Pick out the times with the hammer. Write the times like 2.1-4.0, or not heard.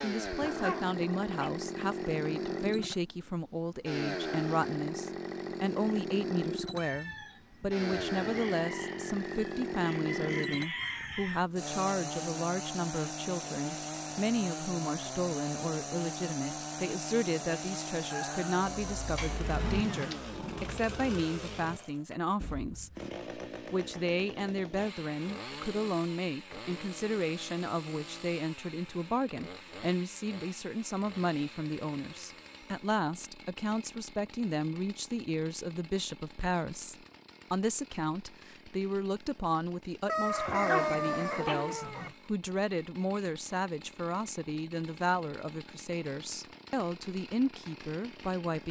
not heard.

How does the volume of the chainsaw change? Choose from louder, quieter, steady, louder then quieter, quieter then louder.
quieter.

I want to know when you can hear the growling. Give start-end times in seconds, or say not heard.
0.4-1.5, 19.1-20.8, 40.5-42.1.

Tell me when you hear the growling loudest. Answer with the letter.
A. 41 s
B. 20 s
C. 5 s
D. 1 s
A.